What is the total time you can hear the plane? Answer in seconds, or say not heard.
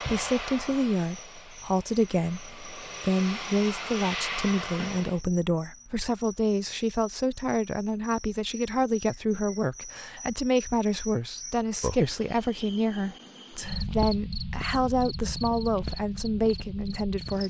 5 s.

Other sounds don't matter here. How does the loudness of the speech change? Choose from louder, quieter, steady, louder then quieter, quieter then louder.
steady.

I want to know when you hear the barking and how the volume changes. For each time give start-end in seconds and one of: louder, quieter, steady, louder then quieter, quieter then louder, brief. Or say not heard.
not heard.